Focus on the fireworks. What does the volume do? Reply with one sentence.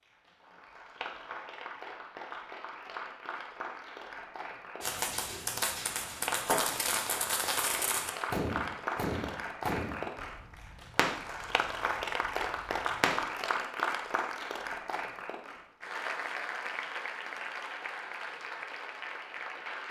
The volume of the fireworks goes down.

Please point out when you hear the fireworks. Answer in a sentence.
The fireworks can be heard from 4.8 to 13.3 s.